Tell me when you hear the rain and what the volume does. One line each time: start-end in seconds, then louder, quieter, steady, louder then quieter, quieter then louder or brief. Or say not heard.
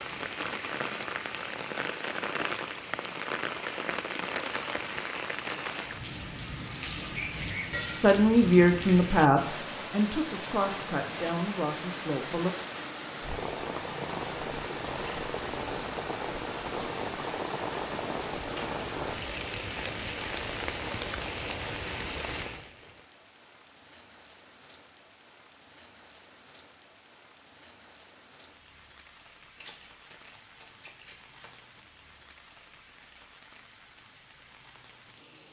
0.0-35.4 quieter.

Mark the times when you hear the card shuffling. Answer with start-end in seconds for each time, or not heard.
29.6-31.5.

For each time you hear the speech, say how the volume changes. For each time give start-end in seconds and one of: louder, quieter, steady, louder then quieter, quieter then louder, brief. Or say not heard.
7.8-12.5 quieter.